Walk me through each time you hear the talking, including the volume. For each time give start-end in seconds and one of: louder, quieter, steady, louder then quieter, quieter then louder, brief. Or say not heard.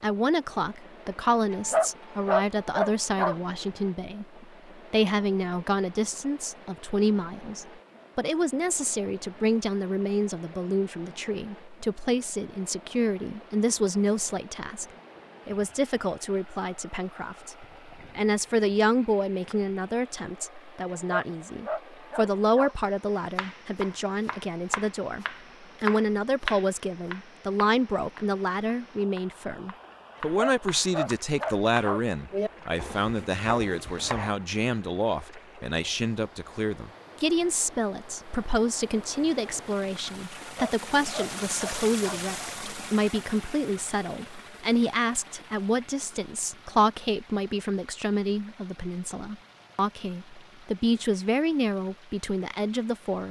0.0-14.8 steady
15.4-53.2 steady.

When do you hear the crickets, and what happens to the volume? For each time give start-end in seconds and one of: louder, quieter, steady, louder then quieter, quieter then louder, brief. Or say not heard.
not heard.